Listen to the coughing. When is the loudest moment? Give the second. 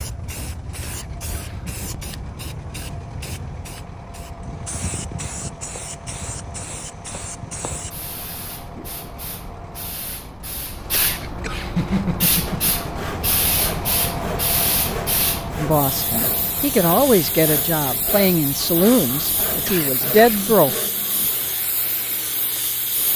12 s.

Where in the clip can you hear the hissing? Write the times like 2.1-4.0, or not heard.
0.0-23.1.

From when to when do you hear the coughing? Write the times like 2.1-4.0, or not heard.
0.8-1.8, 10.9-12.6, 19.6-20.6.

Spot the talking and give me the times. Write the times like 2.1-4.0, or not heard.
15.6-20.8.